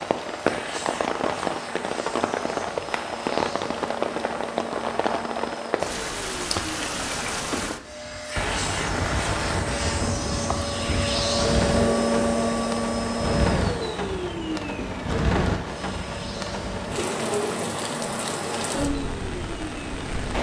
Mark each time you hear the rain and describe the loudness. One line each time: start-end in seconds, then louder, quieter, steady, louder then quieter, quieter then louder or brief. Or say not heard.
0.0-20.3 steady.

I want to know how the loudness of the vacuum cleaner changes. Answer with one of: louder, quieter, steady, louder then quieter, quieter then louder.
louder then quieter.